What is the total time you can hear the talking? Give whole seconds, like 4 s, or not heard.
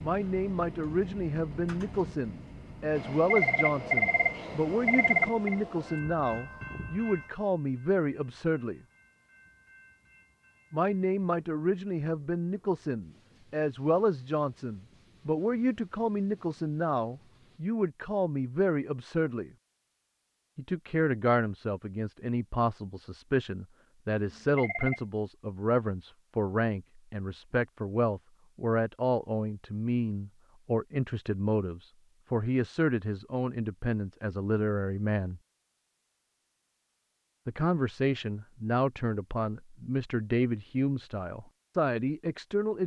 38 s.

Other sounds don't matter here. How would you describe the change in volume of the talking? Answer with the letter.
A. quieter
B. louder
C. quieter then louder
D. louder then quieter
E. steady
E.